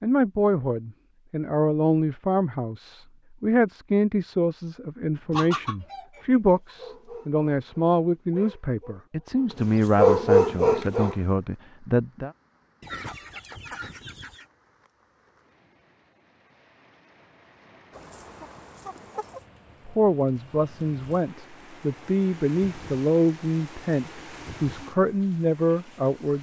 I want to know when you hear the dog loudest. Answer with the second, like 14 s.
10 s.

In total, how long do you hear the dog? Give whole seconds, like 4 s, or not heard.
5 s.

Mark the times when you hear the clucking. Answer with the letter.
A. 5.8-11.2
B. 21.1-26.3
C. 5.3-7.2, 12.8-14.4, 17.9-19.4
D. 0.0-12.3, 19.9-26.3
C.